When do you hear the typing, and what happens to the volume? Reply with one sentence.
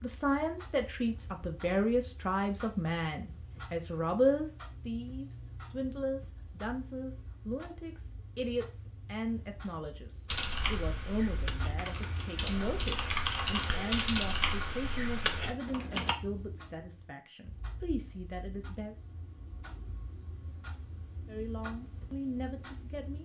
You can hear the typing from 10.3 to 16.1 s, getting louder.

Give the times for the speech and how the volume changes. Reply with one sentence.
The speech can be heard from 0.0 to 18.9 s, getting quieter; and briefly from 21.2 to 23.2 s.